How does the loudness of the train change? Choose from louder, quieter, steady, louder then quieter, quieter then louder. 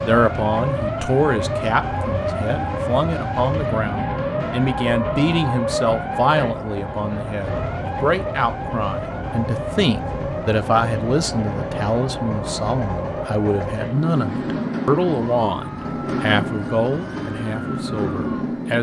louder.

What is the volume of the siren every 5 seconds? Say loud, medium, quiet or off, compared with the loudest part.
loud, loud, medium, medium.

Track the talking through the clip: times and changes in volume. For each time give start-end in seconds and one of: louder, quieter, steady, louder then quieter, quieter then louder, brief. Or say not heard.
0.0-18.7 steady.